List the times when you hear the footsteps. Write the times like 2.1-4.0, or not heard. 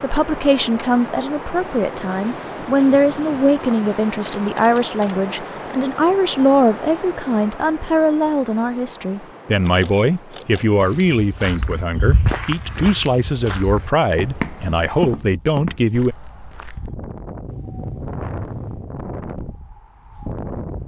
10.8-16.9.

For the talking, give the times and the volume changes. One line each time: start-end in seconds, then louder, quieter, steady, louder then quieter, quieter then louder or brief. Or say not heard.
0.0-16.1 steady.